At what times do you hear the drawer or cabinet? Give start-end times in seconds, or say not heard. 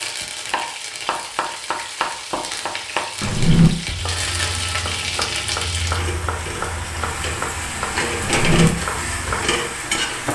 3.2-3.7, 8.2-8.7.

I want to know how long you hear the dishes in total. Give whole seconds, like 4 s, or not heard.
not heard.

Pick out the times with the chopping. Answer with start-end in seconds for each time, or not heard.
0.0-10.3.